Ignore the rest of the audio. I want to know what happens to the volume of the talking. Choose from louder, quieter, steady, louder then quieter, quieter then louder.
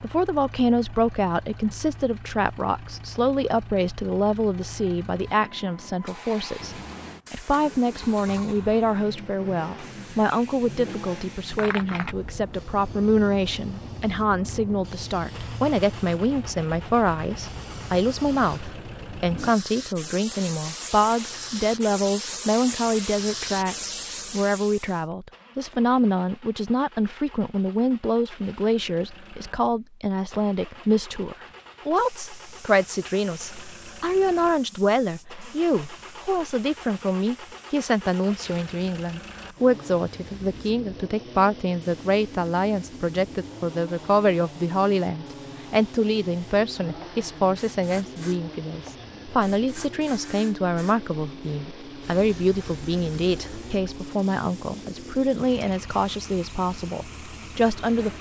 steady.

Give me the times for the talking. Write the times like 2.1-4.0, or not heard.
0.0-58.1.